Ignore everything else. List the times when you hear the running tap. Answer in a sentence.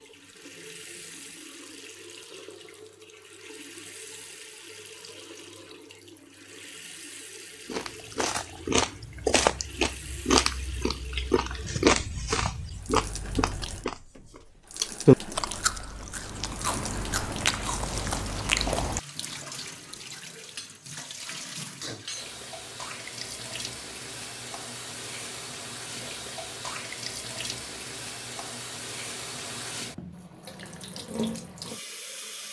You can hear the running tap from 0.0 to 32.4 s.